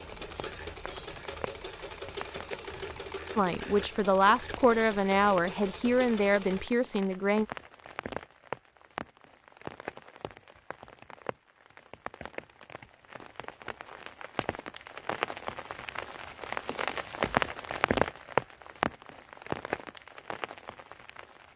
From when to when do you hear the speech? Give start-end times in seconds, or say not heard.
3.4-7.5.